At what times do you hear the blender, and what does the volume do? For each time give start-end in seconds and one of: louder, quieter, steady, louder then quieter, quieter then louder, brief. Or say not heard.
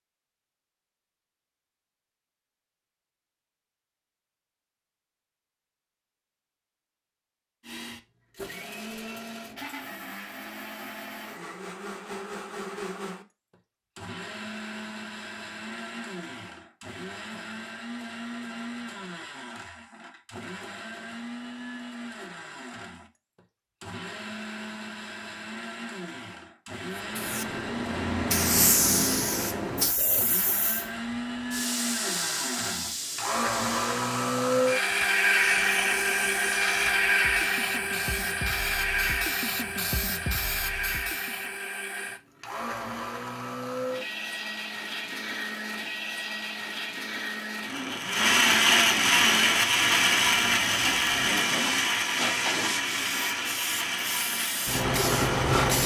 7.6-55.8 louder.